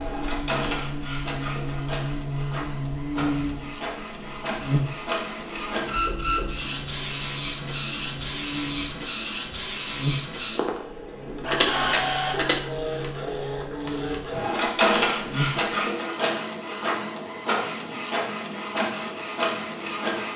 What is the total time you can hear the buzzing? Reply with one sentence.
The buzzing can be heard for 16 seconds in total.